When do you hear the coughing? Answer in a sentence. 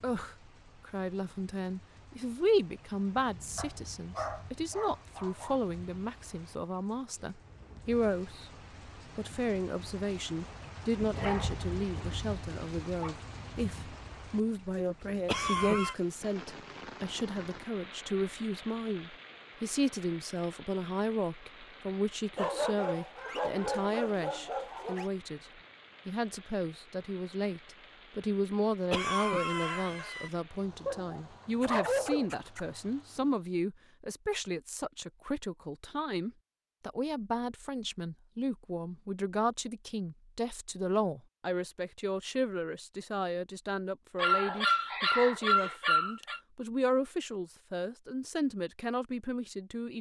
The coughing can be heard from 15.2 to 15.9 s and from 28.9 to 30.3 s.